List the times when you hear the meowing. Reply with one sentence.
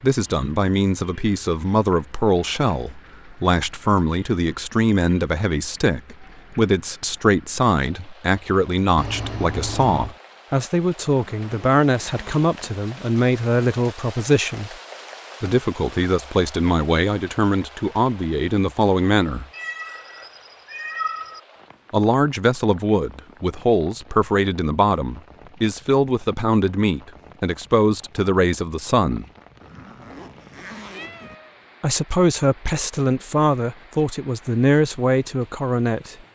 You can hear the meowing from 8.9 to 10.2 s, from 19.5 to 21.4 s and from 30.9 to 31.6 s.